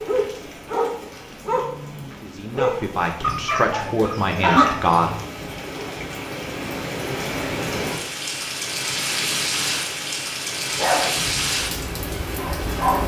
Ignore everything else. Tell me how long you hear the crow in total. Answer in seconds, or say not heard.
not heard.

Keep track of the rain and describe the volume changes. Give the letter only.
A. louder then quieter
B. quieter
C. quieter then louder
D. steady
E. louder
E.